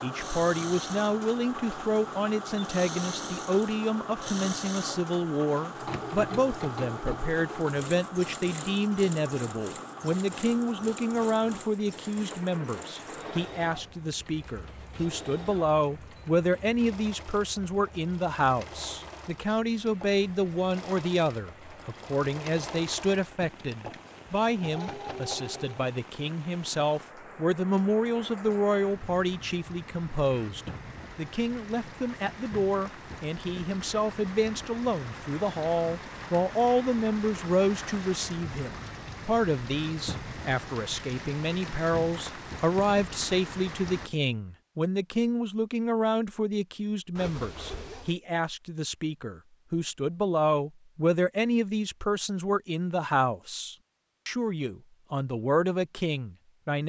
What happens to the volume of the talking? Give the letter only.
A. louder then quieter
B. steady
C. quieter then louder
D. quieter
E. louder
B.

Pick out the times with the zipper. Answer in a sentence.
The zipper can be heard from 47.1 to 48.1 s.